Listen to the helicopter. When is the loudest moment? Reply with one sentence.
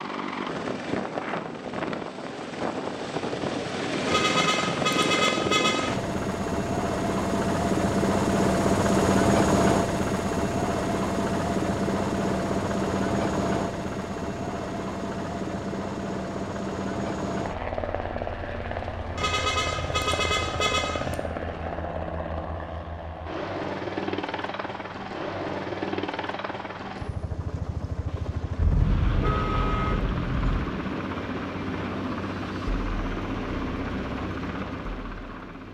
The volume of the helicopter peaks at 9 seconds.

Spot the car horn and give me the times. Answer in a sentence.
The car horn can be heard from 4.0 to 6.0 s, from 19.1 to 21.2 s and from 28.6 to 30.6 s.